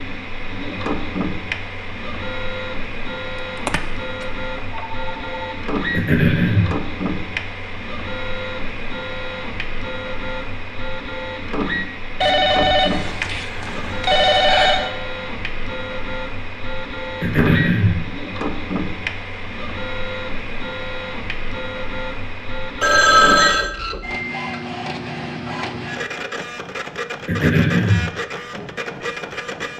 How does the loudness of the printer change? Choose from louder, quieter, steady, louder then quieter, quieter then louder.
steady.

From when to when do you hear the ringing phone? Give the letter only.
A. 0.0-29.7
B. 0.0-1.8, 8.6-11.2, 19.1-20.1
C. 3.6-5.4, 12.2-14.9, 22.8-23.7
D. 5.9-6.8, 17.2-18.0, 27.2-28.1
C.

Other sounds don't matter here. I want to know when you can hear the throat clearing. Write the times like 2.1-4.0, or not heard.
5.9-6.8, 17.2-18.0, 27.2-28.1.